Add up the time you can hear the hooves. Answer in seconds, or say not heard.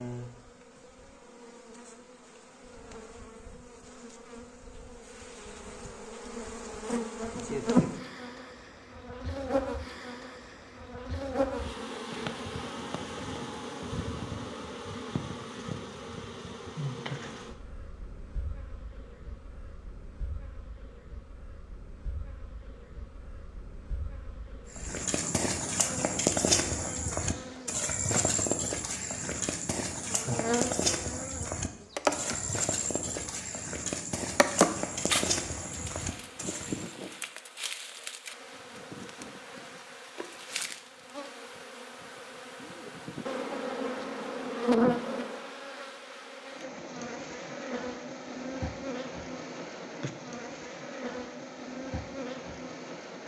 12 s.